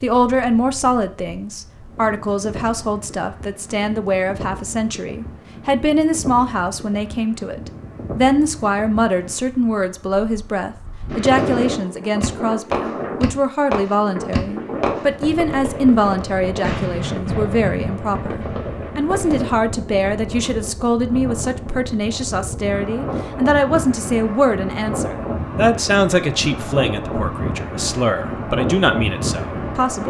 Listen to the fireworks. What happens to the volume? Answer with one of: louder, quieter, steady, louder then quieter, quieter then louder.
quieter.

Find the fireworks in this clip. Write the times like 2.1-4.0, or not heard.
11.1-19.5.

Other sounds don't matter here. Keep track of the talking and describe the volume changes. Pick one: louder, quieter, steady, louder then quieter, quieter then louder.
steady.